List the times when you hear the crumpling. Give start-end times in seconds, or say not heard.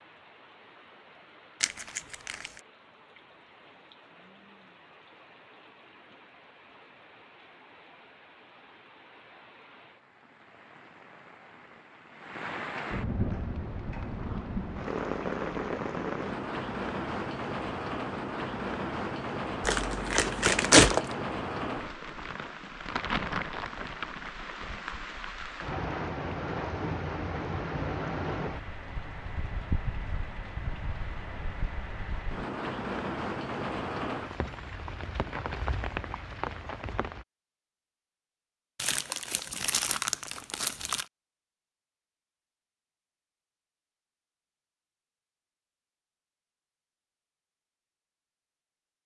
1.6-2.5, 19.6-21.1, 38.8-41.0.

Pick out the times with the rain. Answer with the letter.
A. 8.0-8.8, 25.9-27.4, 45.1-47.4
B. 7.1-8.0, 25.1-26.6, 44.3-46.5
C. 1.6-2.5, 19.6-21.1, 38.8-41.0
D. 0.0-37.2
D.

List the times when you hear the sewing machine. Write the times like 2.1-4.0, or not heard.
not heard.